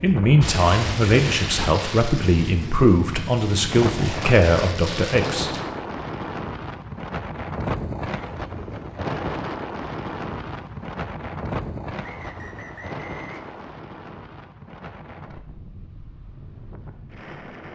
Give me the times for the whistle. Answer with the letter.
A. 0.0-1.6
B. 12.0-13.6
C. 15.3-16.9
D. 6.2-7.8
B.